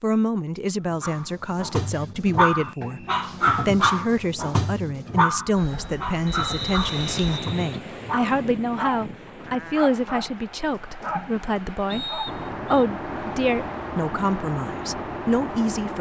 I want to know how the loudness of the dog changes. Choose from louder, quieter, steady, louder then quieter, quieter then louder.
quieter.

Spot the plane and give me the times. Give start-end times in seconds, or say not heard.
5.5-7.4, 12.2-15.9.